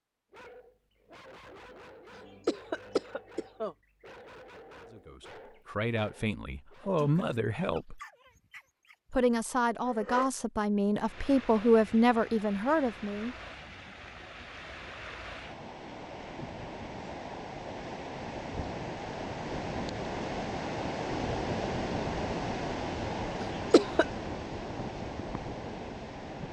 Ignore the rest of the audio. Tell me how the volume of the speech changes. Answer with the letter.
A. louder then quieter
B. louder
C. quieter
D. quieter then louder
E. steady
B.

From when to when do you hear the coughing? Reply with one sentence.
You can hear the coughing from 2.5 to 3.8 s and from 23.5 to 24.1 s.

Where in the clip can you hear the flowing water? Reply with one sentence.
You can hear the flowing water from 10.9 to 26.4 s.